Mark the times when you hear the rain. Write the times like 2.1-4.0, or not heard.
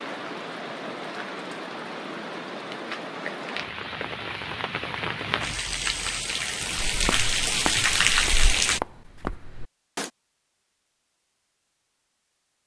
0.0-8.8.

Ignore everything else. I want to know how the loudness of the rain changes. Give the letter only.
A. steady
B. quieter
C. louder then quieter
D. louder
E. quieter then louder
D.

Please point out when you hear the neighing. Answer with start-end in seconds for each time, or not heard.
not heard.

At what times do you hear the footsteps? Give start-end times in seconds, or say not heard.
6.8-10.1.